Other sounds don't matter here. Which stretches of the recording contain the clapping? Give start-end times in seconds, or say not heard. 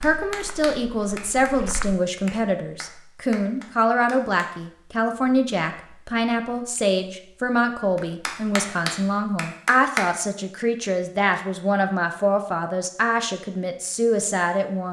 0.0-4.5, 8.0-10.1.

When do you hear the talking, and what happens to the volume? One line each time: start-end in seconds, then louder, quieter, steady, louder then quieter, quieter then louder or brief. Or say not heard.
0.0-14.8 steady.